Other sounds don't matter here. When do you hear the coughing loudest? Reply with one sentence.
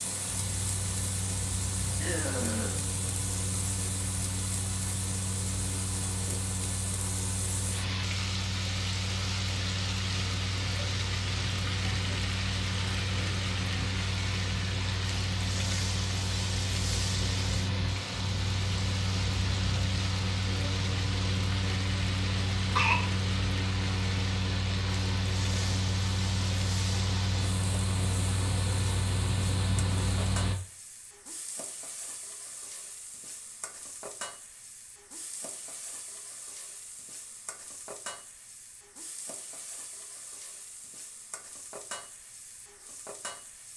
The volume of the coughing peaks at 23 seconds.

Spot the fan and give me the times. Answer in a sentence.
The fan can be heard from 0.0 to 30.6 s.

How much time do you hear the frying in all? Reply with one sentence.
The frying can be heard for 44 seconds in total.